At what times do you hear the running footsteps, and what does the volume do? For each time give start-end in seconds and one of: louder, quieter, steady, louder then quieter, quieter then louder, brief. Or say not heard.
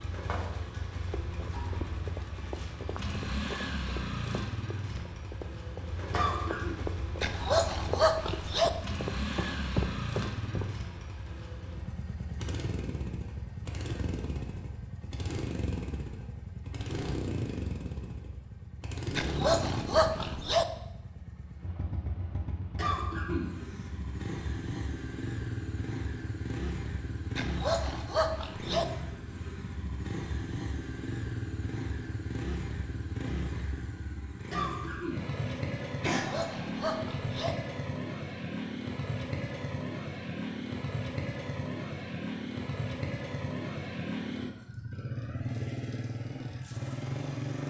1.1-10.8 louder.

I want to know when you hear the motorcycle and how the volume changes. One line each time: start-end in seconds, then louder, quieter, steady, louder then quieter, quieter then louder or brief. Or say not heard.
0.0-47.6 steady.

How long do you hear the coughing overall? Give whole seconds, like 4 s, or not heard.
3 s.